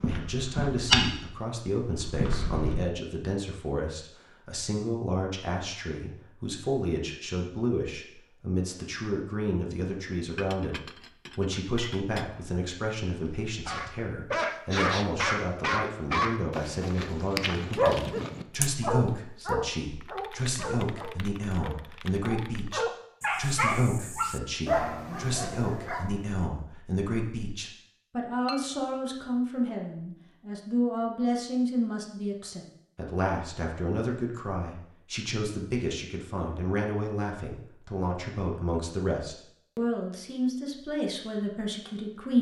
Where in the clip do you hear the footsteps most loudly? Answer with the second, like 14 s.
1 s.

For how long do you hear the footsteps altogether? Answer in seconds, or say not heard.
3 s.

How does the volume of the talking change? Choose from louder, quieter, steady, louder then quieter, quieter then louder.
steady.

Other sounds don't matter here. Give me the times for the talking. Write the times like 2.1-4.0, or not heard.
0.0-42.3.